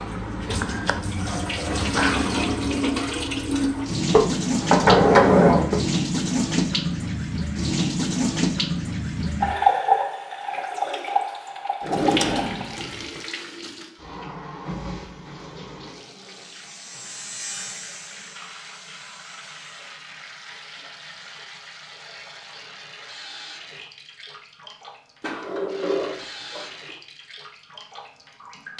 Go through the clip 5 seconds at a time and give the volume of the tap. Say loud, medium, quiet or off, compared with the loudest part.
loud, loud, medium, quiet, quiet, quiet.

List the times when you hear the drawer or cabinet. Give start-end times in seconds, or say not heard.
4.1-5.8, 11.8-13.2, 25.2-26.9.